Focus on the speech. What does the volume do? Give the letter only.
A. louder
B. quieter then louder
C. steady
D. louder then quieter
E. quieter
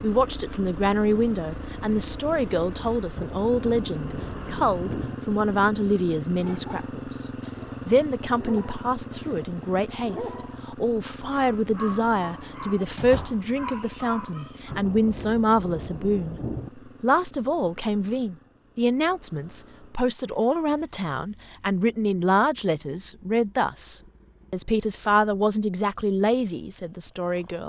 C.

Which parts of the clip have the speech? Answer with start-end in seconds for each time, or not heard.
0.0-7.2, 7.8-16.4, 17.0-27.6.